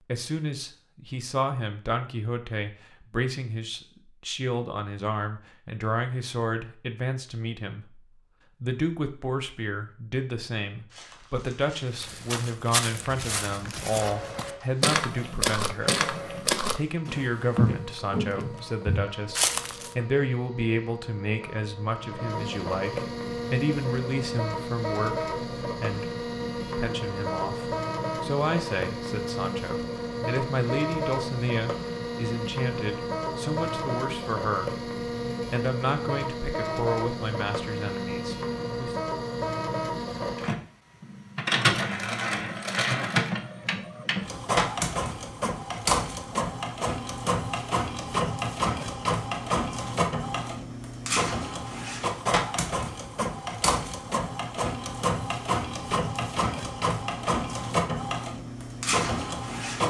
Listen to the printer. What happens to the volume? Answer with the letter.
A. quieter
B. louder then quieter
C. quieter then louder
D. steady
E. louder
E.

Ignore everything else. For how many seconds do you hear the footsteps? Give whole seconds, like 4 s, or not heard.
9 s.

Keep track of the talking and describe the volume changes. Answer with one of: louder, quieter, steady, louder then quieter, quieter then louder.
steady.